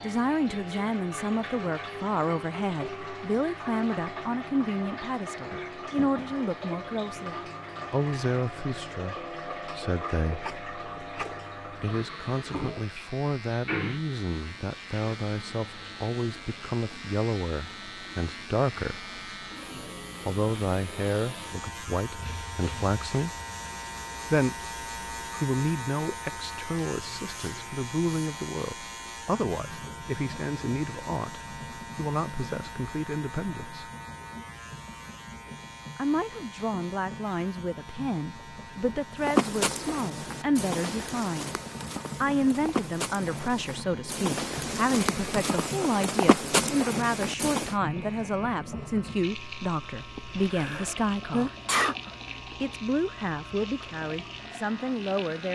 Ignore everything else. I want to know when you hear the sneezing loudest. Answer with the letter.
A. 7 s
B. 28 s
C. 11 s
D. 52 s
D.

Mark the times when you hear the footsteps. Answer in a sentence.
You can hear the footsteps from 39.2 to 47.8 s.